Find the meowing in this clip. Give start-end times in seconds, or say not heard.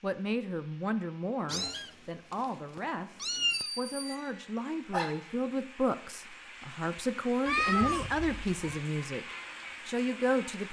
1.4-3.7, 7.5-8.8.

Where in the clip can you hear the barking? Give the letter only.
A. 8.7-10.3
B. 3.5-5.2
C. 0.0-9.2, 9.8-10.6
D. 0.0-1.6
B.